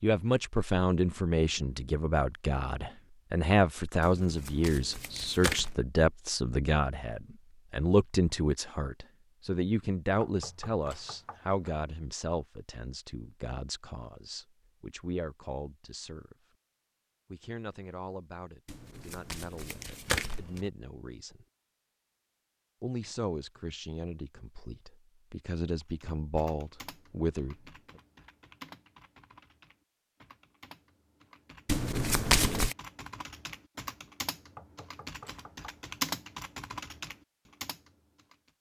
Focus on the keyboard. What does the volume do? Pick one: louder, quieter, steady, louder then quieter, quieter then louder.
louder.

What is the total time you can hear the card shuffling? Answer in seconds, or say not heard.
5 s.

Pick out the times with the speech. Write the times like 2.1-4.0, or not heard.
0.0-16.4, 17.3-21.4, 22.8-27.6.